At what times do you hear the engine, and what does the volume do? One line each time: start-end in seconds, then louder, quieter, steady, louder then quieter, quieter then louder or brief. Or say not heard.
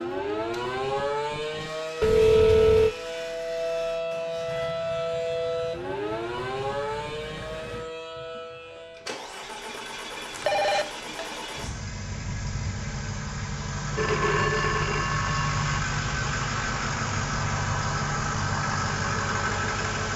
0.0-20.1 louder.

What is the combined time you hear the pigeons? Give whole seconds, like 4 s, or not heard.
not heard.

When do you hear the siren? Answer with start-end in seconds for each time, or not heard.
0.0-9.2.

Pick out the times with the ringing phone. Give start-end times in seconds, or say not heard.
2.0-3.0, 10.3-10.8, 13.9-15.7.